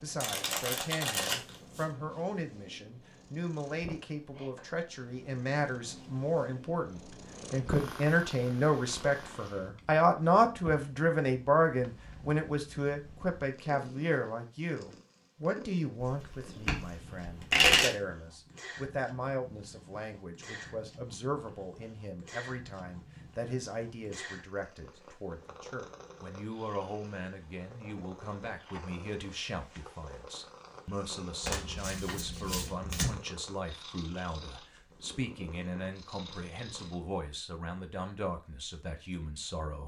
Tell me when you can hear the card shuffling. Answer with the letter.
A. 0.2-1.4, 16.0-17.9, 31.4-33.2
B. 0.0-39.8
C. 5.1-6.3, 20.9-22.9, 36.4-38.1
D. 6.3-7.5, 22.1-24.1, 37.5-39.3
A.